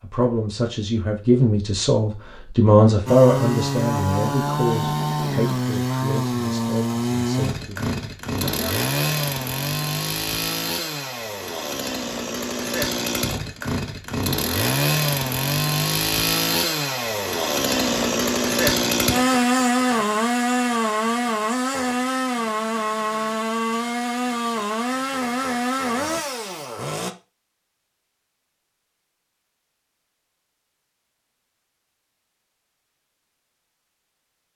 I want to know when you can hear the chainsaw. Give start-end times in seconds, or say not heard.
3.0-27.1.